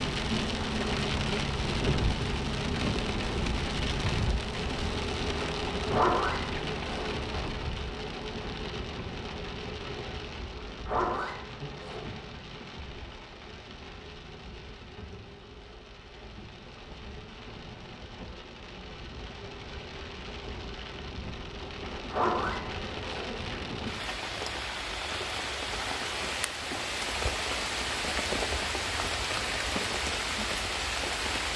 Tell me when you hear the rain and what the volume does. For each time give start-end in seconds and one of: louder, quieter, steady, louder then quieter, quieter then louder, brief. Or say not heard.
0.0-31.5 quieter then louder.